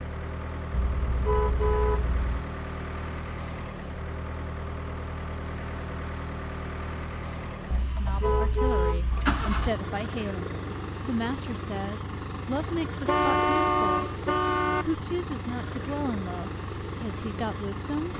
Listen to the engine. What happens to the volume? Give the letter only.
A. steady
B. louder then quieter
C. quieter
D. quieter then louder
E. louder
A.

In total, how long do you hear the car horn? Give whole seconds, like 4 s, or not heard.
5 s.